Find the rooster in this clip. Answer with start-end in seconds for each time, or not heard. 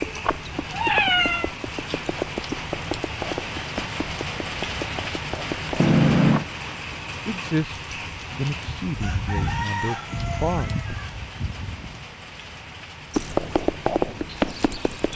8.8-11.7.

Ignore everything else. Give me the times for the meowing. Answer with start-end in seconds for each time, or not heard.
0.7-1.5, 5.8-6.5, 10.6-12.1.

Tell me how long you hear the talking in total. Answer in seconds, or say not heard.
4 s.